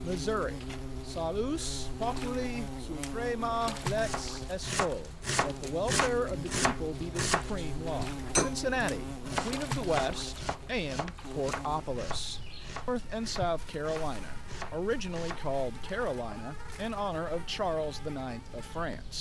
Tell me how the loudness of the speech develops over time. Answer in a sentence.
The loudness of the speech stays about the same.